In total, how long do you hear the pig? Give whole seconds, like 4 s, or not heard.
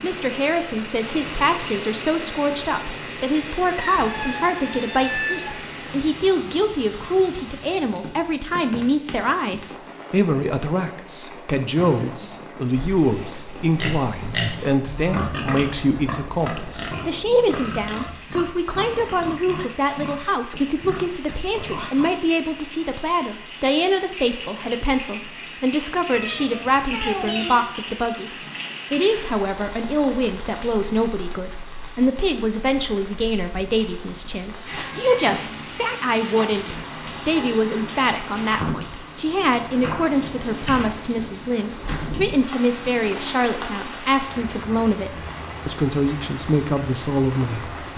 10 s.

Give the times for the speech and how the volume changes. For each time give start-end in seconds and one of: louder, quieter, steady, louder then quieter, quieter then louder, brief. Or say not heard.
0.0-47.9 steady.